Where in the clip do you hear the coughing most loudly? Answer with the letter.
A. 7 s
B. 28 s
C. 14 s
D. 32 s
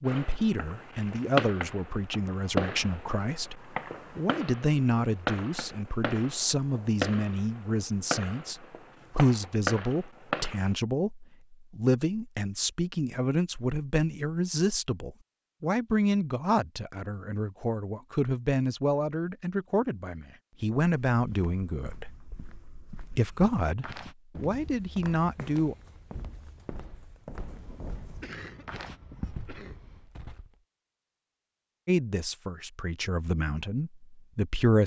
B.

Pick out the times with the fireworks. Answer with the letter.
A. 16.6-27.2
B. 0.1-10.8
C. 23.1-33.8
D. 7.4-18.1
B.